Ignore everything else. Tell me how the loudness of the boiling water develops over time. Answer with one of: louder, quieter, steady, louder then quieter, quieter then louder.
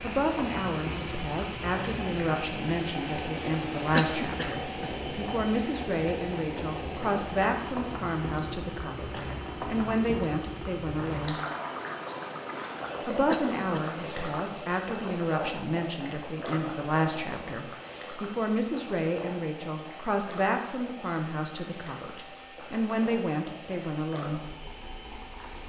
quieter.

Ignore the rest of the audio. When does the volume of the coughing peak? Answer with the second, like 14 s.
4 s.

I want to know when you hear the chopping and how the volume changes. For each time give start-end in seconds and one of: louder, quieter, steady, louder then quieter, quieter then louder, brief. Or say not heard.
not heard.